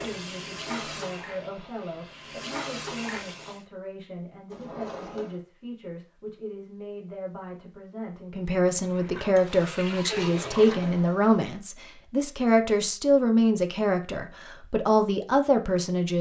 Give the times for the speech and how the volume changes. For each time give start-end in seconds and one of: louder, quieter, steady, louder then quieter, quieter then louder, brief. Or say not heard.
0.0-16.1 louder.